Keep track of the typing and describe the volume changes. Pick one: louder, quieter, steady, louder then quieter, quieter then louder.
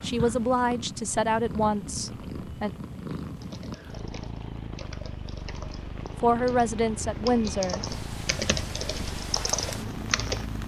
louder.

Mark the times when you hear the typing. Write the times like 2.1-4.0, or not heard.
3.4-10.4.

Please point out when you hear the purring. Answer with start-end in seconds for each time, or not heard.
0.0-10.6.